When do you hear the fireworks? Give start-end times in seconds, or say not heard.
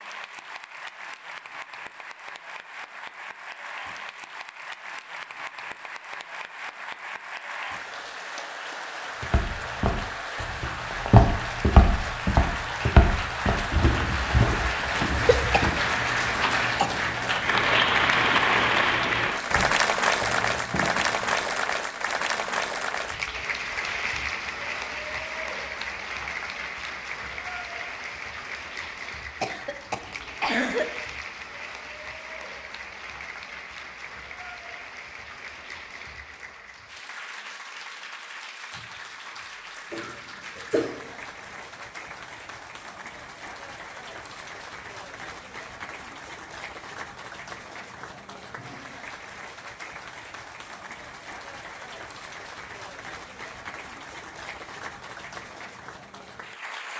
not heard.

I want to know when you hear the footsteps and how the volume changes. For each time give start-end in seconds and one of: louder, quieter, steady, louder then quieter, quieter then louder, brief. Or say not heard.
9.2-21.4 quieter.